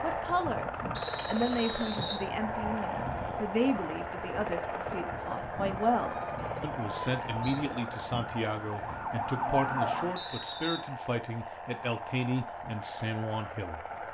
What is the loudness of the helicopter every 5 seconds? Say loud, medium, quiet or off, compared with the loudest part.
loud, loud, medium.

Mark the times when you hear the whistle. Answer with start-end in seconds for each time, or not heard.
0.9-2.2, 6.4-7.6, 10.2-10.8.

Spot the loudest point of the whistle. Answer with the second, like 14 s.
1 s.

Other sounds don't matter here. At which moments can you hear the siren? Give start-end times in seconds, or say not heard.
5.6-10.2.